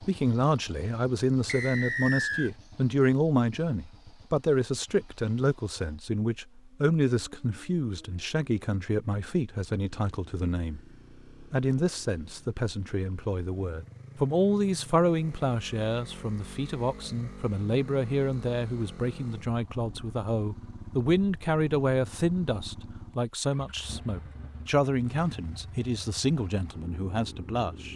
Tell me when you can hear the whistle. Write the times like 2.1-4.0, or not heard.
1.4-2.5.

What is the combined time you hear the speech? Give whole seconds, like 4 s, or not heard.
27 s.